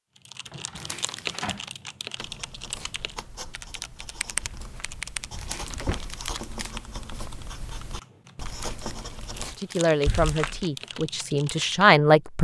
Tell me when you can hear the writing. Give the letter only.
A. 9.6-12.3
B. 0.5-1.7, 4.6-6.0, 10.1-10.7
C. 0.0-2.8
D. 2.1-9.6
D.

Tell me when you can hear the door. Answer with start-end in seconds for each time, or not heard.
0.5-1.7, 4.6-6.0, 10.1-10.7.